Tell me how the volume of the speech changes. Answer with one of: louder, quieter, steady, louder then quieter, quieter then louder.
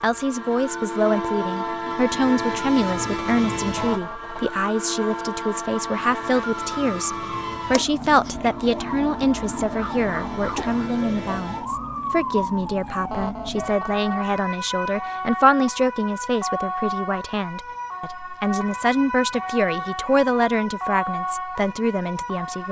steady.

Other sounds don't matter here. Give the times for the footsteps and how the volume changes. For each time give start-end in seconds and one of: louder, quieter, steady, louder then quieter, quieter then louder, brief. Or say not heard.
not heard.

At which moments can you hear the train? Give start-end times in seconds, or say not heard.
0.0-11.7.